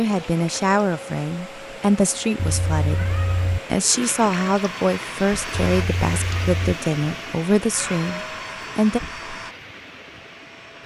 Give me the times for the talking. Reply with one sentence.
You can hear the talking from 0.0 to 3.0 s and from 3.7 to 9.0 s.